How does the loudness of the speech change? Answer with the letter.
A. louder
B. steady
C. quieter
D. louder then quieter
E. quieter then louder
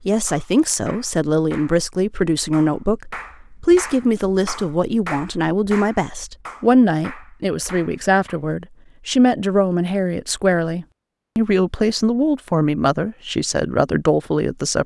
B.